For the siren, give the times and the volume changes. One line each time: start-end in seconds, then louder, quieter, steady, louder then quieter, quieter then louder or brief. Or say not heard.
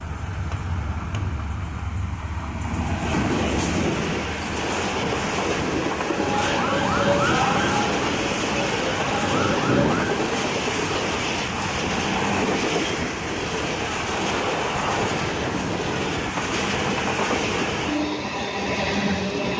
6.0-10.3 quieter then louder.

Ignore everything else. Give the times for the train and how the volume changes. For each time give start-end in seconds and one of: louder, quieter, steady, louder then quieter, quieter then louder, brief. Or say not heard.
0.0-19.5 steady.